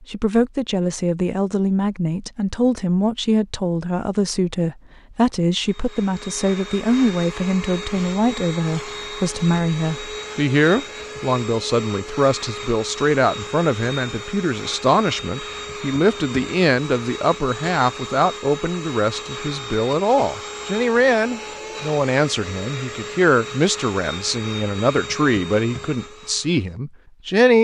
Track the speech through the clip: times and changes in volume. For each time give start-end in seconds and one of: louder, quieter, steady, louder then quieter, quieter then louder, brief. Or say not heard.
0.0-27.5 steady.